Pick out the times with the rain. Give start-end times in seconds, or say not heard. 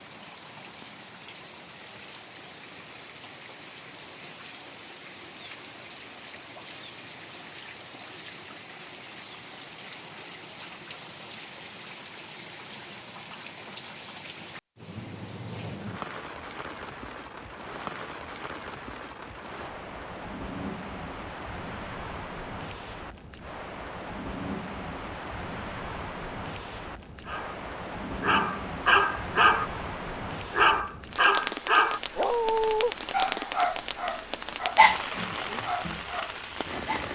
0.0-37.1.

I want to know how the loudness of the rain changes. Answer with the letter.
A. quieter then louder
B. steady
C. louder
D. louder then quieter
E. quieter
C.